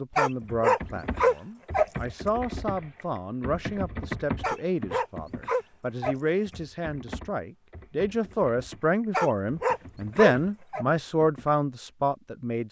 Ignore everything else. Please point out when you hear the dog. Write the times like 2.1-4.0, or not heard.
0.1-1.9, 4.4-6.2, 9.1-10.8.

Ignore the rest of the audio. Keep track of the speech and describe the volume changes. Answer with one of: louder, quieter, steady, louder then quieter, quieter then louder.
louder.